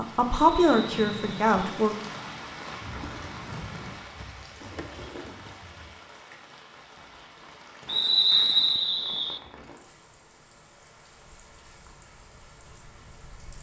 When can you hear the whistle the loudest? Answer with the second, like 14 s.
8 s.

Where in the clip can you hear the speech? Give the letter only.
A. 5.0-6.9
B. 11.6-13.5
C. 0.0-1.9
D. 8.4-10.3
C.